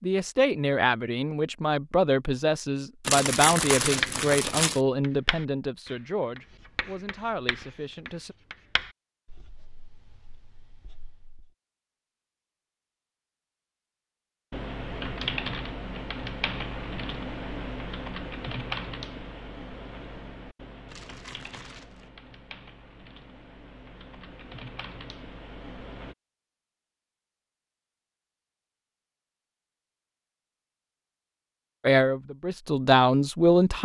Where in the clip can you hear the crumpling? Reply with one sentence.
The crumpling can be heard from 3.0 to 4.8 s and from 20.9 to 22.1 s.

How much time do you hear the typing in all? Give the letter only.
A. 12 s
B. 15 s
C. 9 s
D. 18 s
A.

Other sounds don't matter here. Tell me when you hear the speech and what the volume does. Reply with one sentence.
The speech can be heard from 0.0 to 8.3 s, getting quieter; and briefly from 31.9 to 33.8 s.